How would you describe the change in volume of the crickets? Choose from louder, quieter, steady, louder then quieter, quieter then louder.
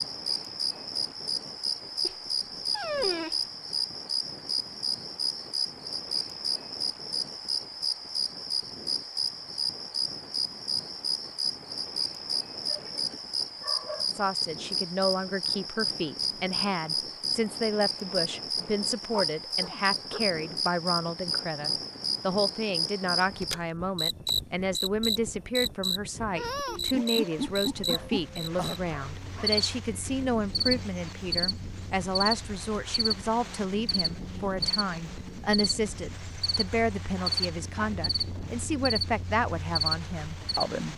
steady.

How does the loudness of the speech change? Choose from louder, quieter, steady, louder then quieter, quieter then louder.
steady.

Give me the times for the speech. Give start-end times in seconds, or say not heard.
14.1-40.9.